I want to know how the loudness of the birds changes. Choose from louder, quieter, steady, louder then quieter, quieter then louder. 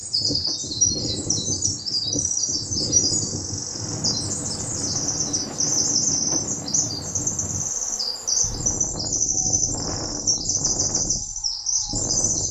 steady.